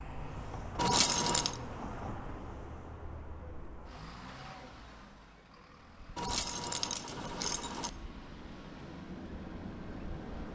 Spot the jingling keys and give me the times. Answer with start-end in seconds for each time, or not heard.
0.8-1.6, 6.2-7.9.